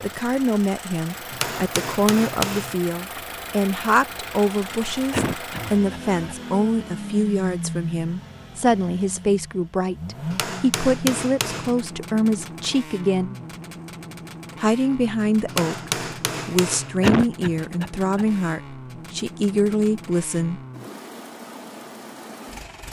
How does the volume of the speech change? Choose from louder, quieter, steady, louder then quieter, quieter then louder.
steady.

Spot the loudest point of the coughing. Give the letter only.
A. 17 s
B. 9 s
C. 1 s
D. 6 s
A.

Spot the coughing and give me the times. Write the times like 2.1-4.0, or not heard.
5.1-6.3, 17.0-18.2.